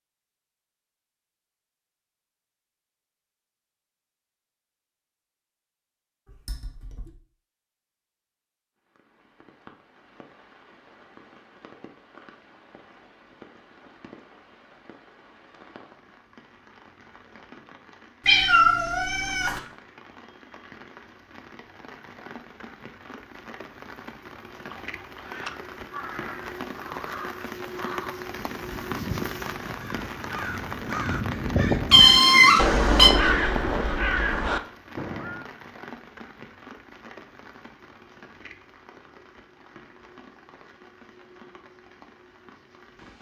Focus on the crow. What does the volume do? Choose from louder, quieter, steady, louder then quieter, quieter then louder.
louder.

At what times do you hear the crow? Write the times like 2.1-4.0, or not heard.
24.5-35.5.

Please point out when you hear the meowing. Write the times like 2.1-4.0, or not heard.
6.2-7.1, 18.2-19.6, 31.9-33.1.